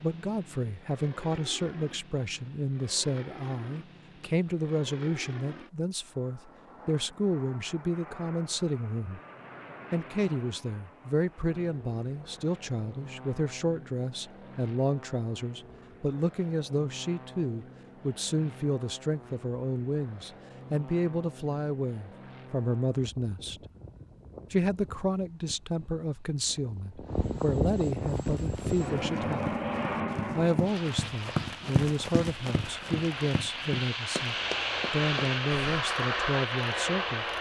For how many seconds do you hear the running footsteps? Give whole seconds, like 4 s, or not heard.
8 s.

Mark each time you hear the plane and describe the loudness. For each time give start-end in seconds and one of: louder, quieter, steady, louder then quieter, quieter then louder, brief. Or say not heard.
0.0-37.3 louder.